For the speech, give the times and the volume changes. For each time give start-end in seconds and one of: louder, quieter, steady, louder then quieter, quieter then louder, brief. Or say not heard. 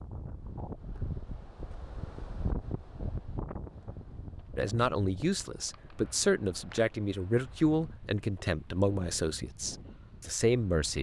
4.5-10.9 steady.